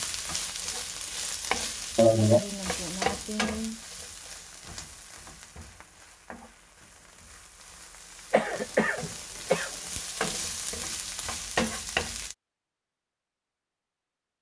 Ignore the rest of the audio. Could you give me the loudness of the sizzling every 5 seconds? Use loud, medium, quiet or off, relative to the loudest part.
loud, quiet, loud.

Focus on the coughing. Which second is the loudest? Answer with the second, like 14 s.
2 s.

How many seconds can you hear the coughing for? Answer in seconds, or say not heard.
2 s.